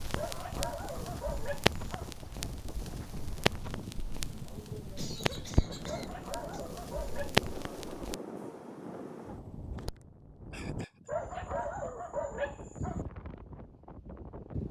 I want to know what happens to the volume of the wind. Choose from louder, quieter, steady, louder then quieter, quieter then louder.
steady.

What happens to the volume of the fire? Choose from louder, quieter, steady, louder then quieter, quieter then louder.
quieter then louder.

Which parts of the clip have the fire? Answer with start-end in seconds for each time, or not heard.
0.0-8.2.